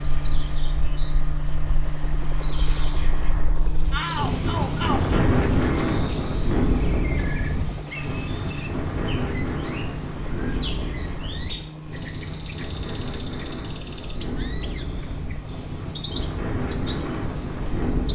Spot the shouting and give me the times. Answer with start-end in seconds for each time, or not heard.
3.9-5.2.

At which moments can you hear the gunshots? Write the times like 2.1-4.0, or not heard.
not heard.